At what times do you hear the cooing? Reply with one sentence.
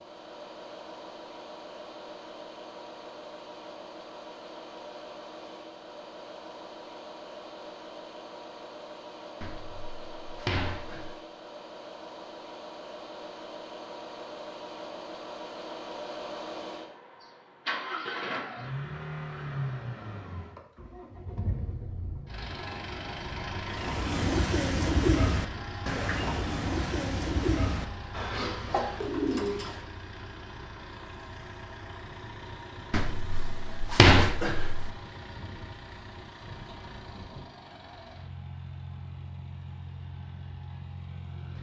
The cooing can be heard from 23.7 to 29.8 s.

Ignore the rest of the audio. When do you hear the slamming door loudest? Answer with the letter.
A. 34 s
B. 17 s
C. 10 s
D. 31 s
A.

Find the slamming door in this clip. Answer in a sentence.
The slamming door can be heard from 9.4 to 11.2 s and from 32.9 to 34.9 s.